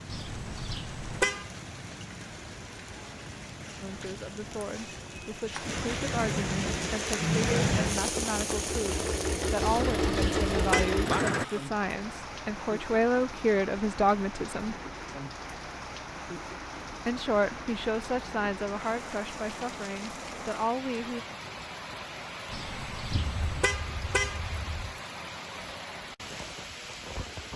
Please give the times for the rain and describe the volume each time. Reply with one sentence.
You can hear the rain from 0.0 to 27.5 s, getting louder then quieter.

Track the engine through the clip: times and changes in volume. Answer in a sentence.
The engine can be heard from 6.6 to 11.4 s, getting louder.